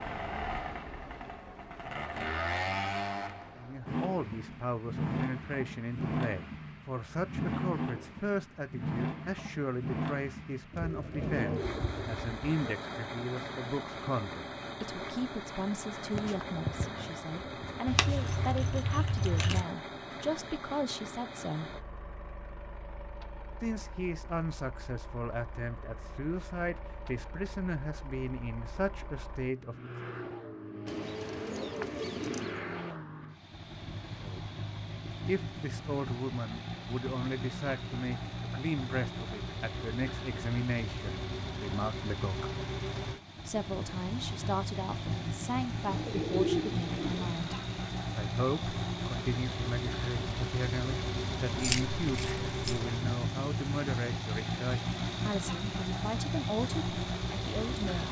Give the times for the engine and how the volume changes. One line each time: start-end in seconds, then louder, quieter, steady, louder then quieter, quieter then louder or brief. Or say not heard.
0.0-58.0 quieter then louder.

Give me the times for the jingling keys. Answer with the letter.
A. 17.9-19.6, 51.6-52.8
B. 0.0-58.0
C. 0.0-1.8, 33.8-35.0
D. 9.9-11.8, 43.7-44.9
A.